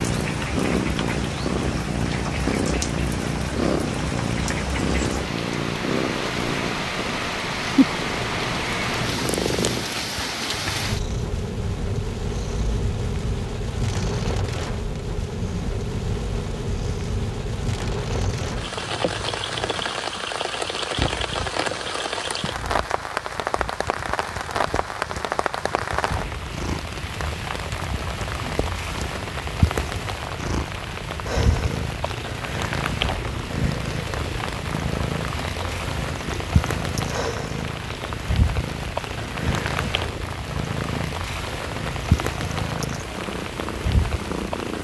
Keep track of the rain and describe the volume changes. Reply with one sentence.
The loudness of the rain stays about the same.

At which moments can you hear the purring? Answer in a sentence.
The purring can be heard from 0.0 to 44.7 s.